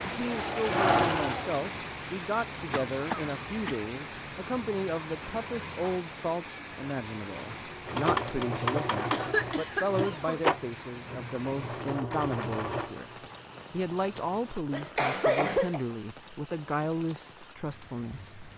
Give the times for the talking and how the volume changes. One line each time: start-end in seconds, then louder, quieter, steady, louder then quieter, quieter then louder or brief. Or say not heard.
0.0-18.4 steady.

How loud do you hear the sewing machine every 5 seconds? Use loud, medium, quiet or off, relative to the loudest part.
loud, loud, medium, off.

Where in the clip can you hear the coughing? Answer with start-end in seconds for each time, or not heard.
2.7-3.8, 9.1-10.4, 14.7-15.8.